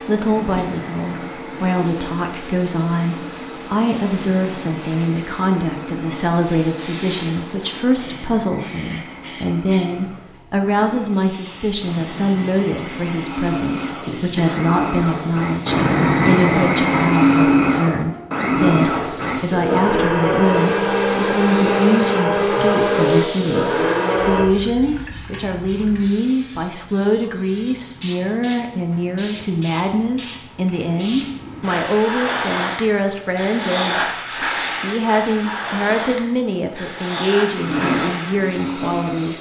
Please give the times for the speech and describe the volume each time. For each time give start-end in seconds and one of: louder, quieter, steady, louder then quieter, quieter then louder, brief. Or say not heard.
0.1-39.3 steady.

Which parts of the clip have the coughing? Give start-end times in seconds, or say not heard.
14.1-14.7.